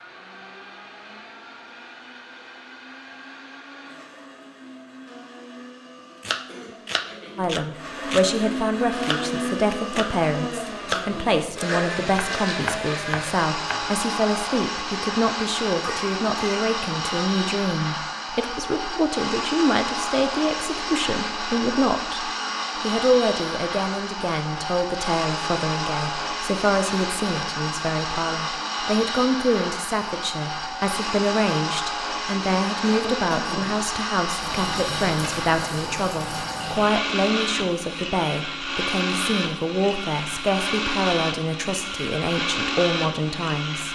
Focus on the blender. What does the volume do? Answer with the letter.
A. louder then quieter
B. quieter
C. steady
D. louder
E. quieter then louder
D.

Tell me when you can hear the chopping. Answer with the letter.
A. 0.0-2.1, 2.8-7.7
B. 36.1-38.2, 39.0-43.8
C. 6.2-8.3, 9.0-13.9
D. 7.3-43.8
C.